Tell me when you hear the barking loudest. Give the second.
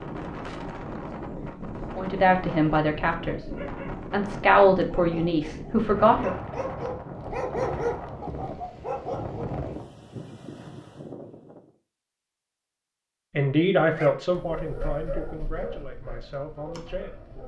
8 s.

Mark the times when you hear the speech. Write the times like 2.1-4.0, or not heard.
1.9-6.3, 13.3-17.2.